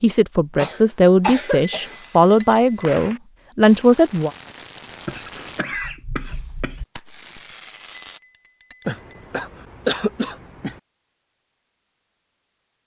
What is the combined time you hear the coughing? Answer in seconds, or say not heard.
5 s.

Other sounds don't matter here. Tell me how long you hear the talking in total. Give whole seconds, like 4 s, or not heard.
4 s.